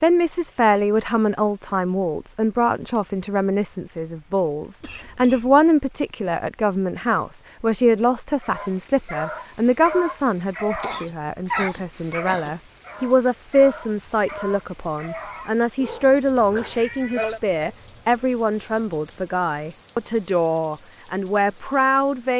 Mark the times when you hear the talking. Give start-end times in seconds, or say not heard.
0.0-22.3.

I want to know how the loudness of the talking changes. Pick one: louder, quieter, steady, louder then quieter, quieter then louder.
steady.